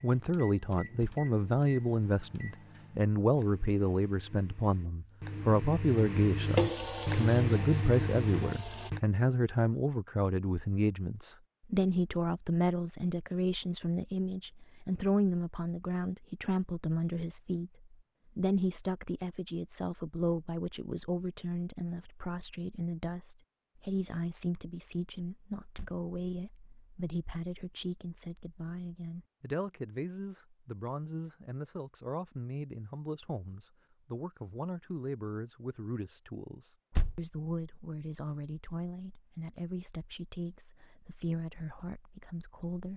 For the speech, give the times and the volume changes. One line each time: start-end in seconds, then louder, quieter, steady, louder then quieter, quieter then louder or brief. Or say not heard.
0.0-42.9 quieter.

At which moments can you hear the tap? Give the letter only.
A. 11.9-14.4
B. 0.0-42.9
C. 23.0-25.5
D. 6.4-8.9
D.